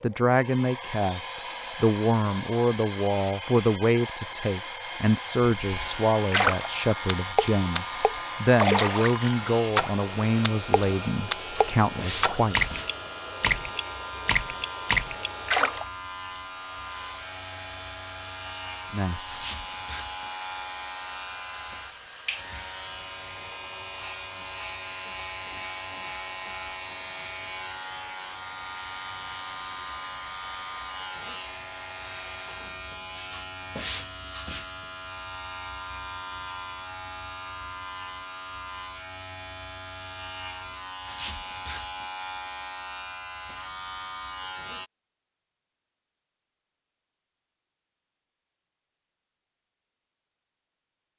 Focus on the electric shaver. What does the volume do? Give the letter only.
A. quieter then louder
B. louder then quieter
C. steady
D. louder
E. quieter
C.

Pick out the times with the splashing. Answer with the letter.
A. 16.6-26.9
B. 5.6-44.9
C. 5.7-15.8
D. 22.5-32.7
C.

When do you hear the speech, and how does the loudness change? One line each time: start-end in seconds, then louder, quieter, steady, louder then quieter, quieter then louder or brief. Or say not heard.
0.0-12.6 steady
18.9-19.4 brief.